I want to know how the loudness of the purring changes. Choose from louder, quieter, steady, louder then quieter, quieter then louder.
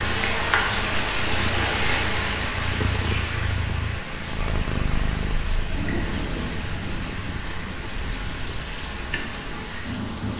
louder then quieter.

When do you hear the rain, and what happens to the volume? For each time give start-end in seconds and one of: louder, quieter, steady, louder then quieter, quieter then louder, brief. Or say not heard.
0.0-10.3 quieter.